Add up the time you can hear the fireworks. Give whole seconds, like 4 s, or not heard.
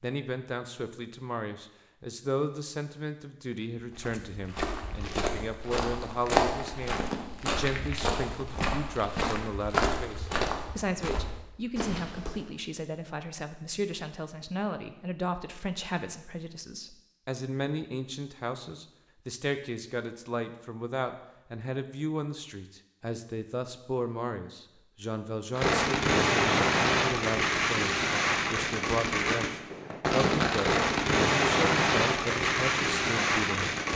8 s.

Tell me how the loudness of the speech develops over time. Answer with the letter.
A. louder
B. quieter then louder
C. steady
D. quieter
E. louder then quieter
C.